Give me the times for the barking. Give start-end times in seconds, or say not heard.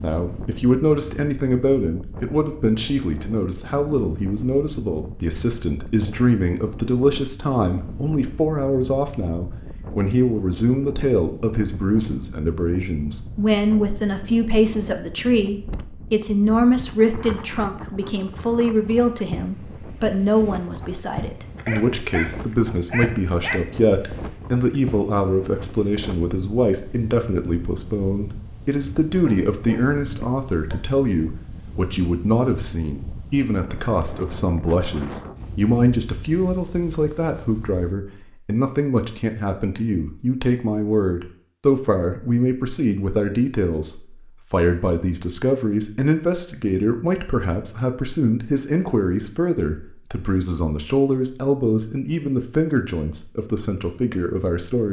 21.6-23.6, 29.1-30.8.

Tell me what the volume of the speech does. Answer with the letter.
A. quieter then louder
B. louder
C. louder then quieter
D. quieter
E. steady
E.